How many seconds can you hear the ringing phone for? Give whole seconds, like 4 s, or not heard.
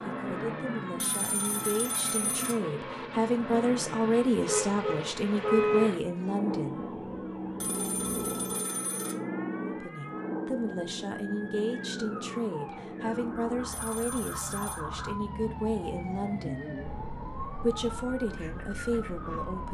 4 s.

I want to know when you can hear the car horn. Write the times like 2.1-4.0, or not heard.
4.5-5.8.